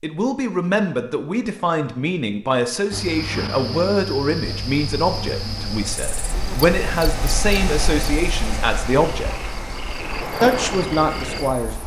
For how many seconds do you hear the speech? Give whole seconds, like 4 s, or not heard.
11 s.